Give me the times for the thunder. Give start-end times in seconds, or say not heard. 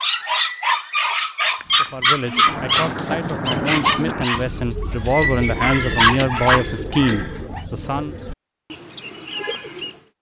1.6-4.2.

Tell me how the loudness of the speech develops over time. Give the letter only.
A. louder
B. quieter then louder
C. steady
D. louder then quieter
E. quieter
A.